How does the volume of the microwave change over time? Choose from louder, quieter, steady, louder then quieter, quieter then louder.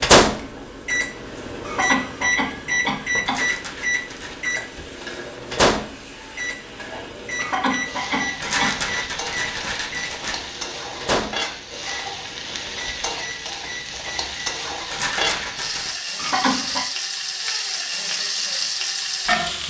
quieter.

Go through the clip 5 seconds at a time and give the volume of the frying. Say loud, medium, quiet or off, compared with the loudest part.
quiet, medium, medium, loud.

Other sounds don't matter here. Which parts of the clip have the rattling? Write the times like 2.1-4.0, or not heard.
3.2-4.5, 8.4-10.5, 14.8-15.9.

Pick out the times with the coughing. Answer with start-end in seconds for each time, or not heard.
1.6-3.5, 7.3-8.9, 16.1-16.9.